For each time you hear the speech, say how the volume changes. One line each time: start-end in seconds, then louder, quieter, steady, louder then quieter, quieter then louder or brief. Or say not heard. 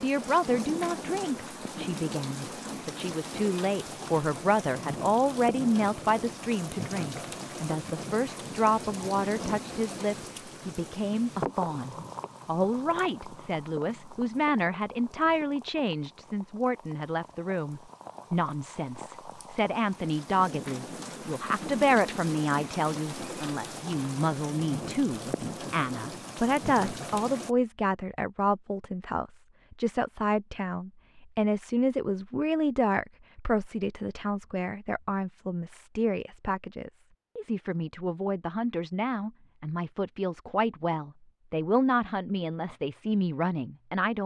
0.0-44.2 steady.